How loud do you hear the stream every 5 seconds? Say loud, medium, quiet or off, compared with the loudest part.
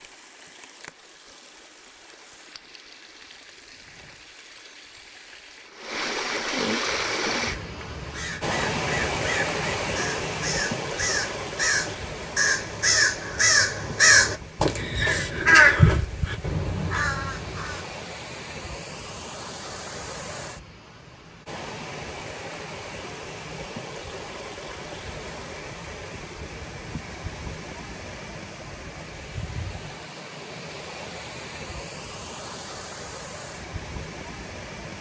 quiet, loud, medium, medium, medium, medium, medium.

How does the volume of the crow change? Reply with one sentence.
The loudness of the crow goes up.